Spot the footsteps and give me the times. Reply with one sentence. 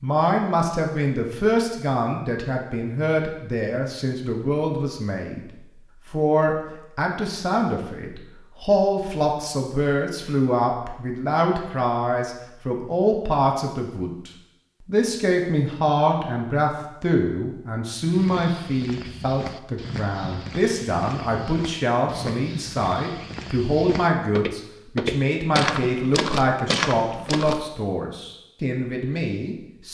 The footsteps can be heard from 18.0 to 27.6 s.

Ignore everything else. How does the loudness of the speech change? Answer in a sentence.
The loudness of the speech stays about the same.